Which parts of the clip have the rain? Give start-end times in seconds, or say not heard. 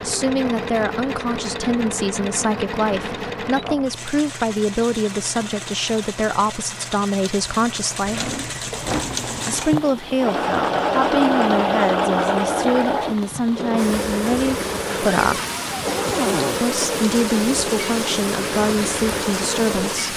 8.7-20.1.